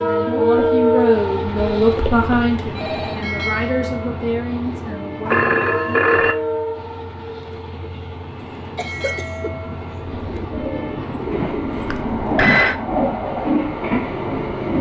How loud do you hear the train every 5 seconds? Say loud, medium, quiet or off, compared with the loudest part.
loud, medium, loud.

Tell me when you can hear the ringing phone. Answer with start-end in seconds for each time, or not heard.
1.6-3.2, 5.2-6.3, 11.9-12.8.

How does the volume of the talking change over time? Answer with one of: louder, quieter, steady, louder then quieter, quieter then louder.
quieter.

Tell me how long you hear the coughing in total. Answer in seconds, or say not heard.
2 s.